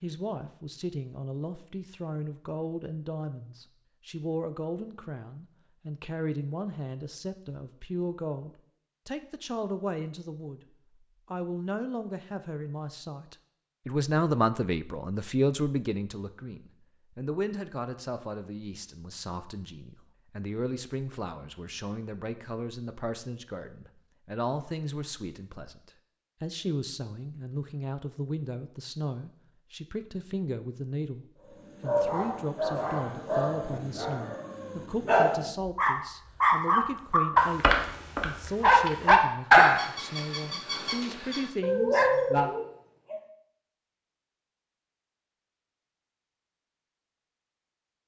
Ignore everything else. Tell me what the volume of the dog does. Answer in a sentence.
The volume of the dog goes up, then down.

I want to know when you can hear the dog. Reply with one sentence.
The dog can be heard from 31.4 to 43.2 s.